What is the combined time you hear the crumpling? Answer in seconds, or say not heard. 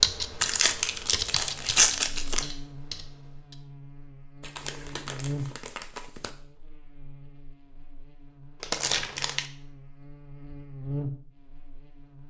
5 s.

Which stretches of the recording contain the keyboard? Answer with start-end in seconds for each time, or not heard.
0.0-3.5.